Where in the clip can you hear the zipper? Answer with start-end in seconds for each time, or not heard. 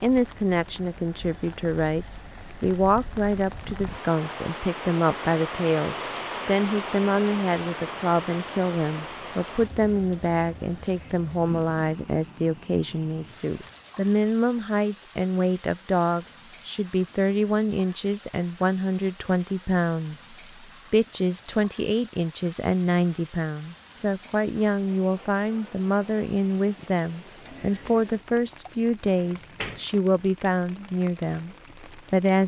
not heard.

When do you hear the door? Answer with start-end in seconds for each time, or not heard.
29.1-29.9.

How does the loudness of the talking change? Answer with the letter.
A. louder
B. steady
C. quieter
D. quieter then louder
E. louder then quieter
B.